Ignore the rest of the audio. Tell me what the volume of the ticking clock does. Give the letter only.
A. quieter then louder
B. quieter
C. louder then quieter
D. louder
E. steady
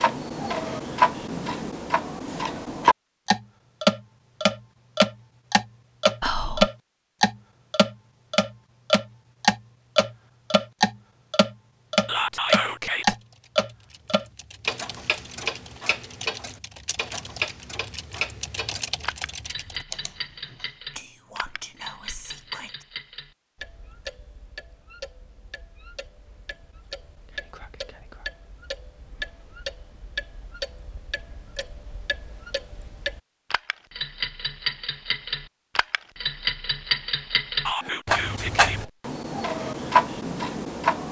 A.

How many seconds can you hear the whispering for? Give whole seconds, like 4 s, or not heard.
6 s.